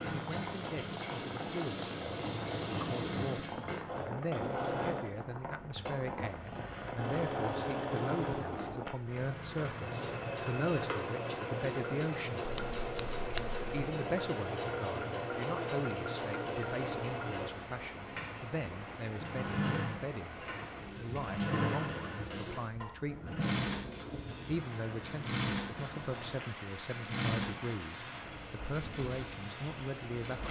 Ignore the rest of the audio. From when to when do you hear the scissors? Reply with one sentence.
You can hear the scissors from 12.4 to 13.9 s.